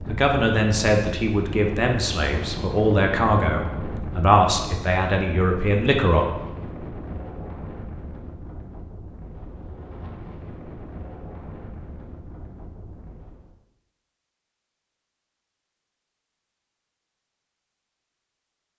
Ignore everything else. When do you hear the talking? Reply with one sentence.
You can hear the talking from 0.1 to 6.2 s.